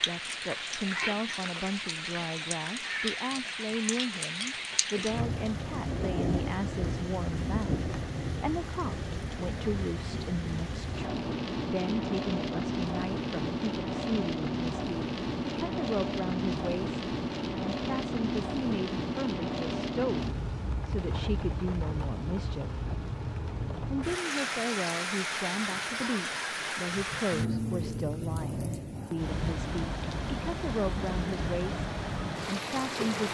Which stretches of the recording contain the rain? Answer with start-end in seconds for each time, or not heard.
0.0-33.2.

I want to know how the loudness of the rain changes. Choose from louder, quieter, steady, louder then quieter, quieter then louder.
steady.